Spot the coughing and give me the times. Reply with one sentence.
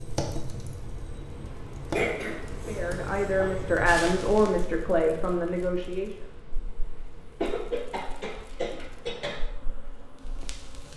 You can hear the coughing from 1.9 to 3.3 s and from 7.4 to 9.3 s.